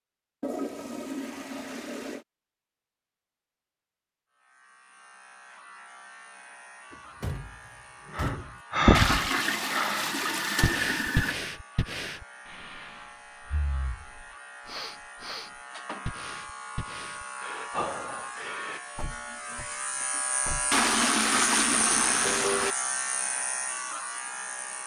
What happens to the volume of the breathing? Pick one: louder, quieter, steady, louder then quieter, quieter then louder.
quieter then louder.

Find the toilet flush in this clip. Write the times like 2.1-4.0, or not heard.
0.4-2.2, 8.9-11.3, 20.7-22.8.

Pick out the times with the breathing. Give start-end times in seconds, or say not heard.
8.2-18.8.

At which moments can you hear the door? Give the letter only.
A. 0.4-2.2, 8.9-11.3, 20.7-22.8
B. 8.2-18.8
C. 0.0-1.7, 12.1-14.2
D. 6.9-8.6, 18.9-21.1
D.